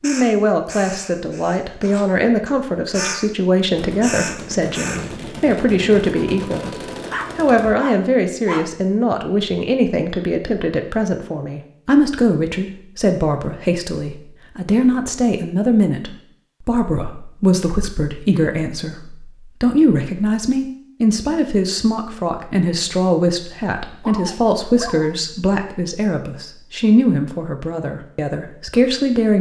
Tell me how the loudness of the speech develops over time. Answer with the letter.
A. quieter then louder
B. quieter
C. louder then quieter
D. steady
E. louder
D.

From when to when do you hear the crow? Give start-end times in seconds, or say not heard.
0.0-3.2, 4.0-5.0.